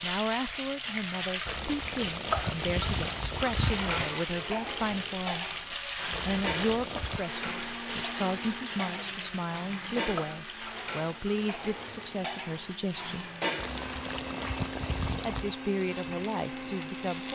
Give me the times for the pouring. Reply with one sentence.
The pouring can be heard from 1.4 to 4.1 s, from 6.1 to 7.2 s and from 13.6 to 15.6 s.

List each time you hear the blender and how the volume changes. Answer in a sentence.
You can hear the blender from 7.2 to 17.3 s, getting quieter then louder.